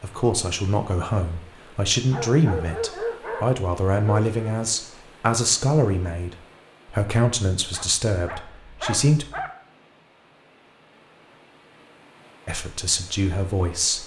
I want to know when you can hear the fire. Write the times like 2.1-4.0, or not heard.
not heard.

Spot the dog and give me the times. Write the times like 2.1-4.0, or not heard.
2.1-4.7, 7.7-9.5.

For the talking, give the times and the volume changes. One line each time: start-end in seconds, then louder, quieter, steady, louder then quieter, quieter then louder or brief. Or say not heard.
0.0-9.2 steady
12.4-14.0 brief.